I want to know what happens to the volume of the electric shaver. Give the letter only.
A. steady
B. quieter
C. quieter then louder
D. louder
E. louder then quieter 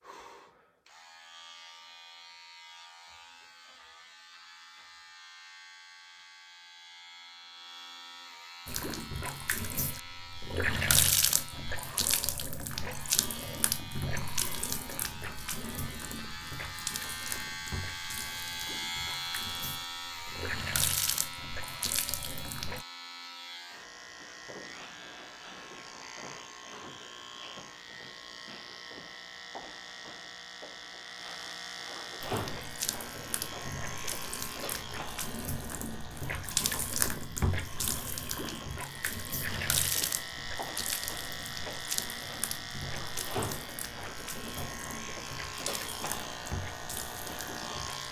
D.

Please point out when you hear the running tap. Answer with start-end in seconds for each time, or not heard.
8.7-22.9, 32.2-48.0.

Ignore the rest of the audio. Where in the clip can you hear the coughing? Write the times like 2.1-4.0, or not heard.
not heard.